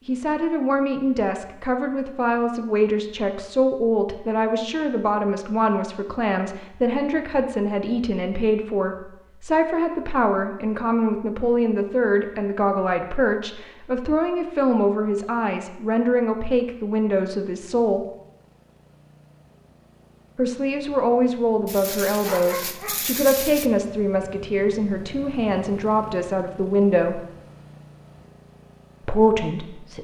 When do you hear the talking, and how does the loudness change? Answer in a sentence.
The talking can be heard from 0.1 to 18.1 s, at a steady volume; from 20.4 to 27.2 s, at a steady volume; and briefly from 29.1 to 29.9 s.